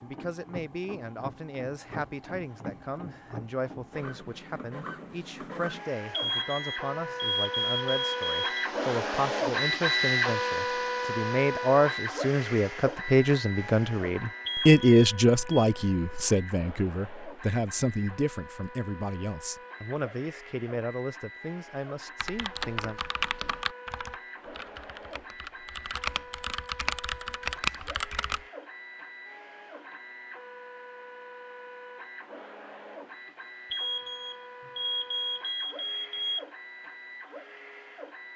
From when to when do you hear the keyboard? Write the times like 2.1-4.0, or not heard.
22.1-28.4.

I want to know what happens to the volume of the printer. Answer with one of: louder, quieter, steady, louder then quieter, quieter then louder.
louder then quieter.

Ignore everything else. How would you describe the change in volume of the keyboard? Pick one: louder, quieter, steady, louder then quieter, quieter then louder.
quieter then louder.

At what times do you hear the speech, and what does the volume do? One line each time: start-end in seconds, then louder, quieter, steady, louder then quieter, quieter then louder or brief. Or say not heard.
0.0-23.0 louder then quieter.